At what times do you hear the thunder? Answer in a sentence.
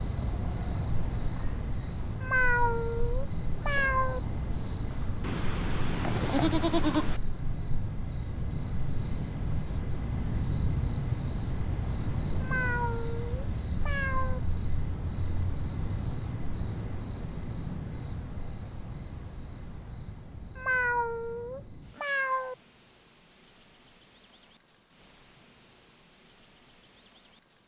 The thunder can't be heard in this clip.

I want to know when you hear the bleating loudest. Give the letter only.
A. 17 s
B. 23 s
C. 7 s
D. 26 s
C.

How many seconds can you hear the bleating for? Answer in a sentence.
You can hear the bleating for 2 seconds altogether.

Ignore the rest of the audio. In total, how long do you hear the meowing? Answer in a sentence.
You can hear the meowing for 6 seconds altogether.